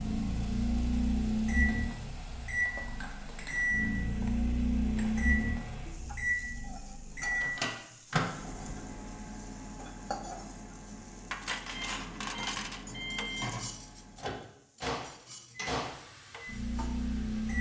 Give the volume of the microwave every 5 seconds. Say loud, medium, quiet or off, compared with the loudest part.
loud, loud, medium, loud.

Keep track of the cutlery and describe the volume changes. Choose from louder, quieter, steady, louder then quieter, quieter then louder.
quieter.